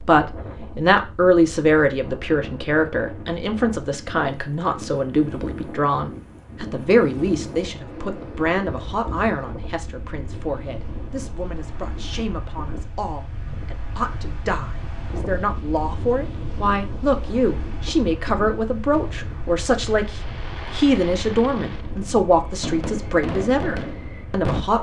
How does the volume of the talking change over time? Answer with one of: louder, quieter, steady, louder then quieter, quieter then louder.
quieter then louder.